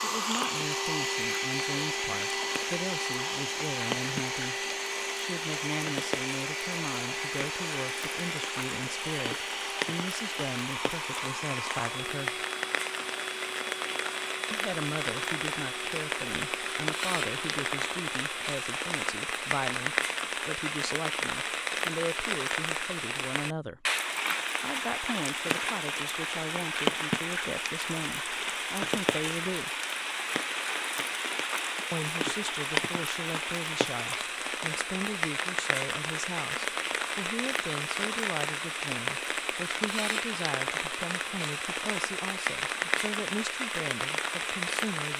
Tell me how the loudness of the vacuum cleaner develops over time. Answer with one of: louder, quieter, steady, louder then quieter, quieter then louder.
quieter.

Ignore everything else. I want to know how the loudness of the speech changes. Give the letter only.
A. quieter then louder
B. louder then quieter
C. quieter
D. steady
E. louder
D.